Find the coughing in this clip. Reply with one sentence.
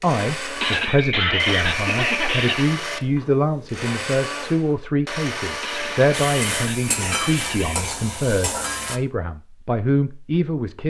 You can hear the coughing from 0.6 to 2.6 s and from 5.6 to 8.0 s.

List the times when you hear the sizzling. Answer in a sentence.
You can hear the sizzling from 6.1 to 9.0 s.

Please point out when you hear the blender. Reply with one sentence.
The blender can be heard from 0.0 to 7.7 s.